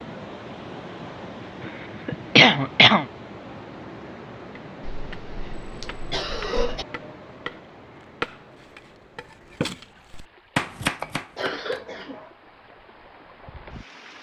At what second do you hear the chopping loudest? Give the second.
11 s.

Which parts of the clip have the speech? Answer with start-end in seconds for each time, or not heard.
not heard.